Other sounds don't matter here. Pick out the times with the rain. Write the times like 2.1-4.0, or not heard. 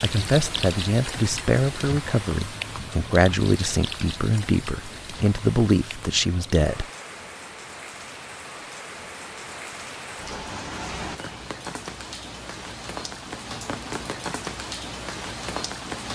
0.0-16.1.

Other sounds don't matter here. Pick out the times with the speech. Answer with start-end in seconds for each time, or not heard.
0.0-6.8.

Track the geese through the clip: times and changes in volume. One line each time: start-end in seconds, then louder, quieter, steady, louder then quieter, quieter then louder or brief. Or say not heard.
not heard.